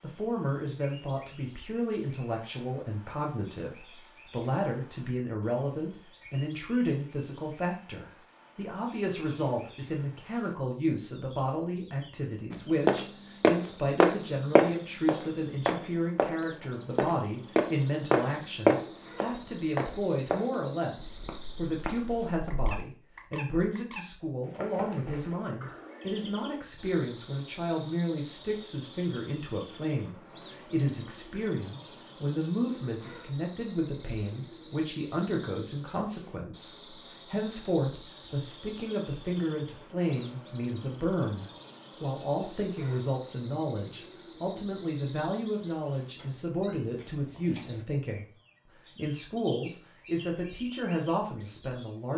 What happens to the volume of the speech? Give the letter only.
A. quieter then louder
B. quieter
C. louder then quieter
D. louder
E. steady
E.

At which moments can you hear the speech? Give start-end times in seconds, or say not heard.
0.0-48.2, 49.0-52.1.